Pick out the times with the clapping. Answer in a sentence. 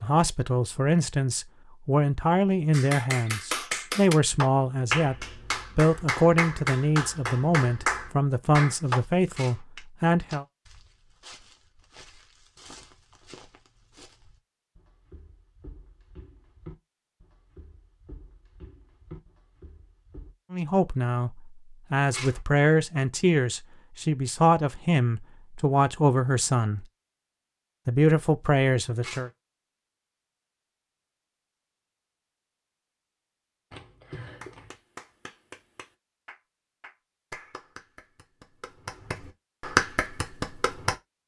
You can hear the clapping from 2.7 to 9.0 s and from 34.4 to 41.0 s.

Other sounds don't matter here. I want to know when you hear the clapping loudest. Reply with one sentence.
The volume of the clapping peaks at 40 seconds.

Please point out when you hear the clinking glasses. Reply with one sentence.
You can't hear the clinking glasses here.